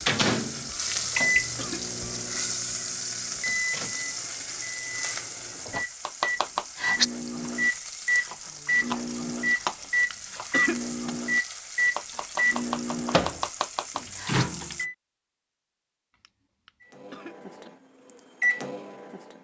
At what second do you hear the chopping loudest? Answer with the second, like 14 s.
7 s.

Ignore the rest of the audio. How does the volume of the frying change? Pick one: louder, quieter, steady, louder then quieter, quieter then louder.
quieter.